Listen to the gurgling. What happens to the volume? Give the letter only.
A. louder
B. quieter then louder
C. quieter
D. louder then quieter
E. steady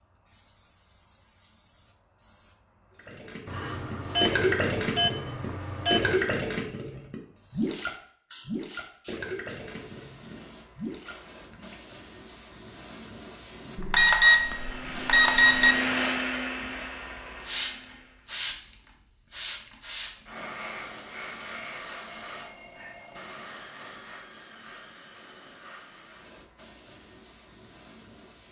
C.